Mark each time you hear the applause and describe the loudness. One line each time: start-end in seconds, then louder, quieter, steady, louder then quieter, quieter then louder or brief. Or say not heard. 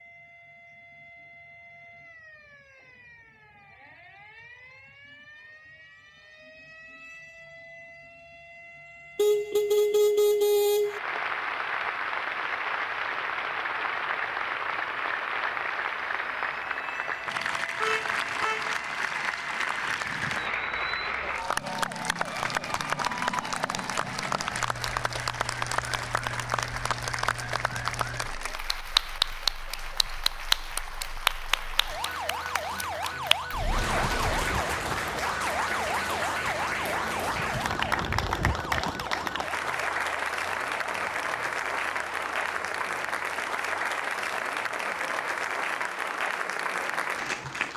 10.8-47.7 steady.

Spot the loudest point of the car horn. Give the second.
10 s.